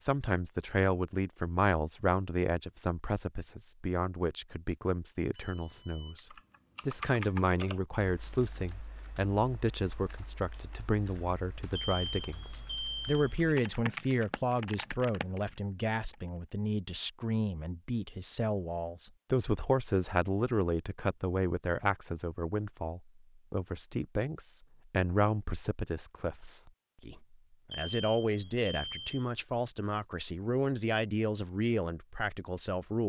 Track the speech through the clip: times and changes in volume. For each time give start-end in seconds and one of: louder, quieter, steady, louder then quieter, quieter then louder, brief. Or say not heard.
0.0-33.0 steady.